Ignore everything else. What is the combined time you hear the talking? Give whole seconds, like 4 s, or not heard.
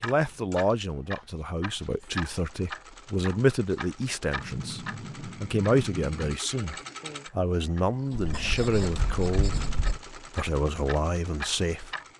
12 s.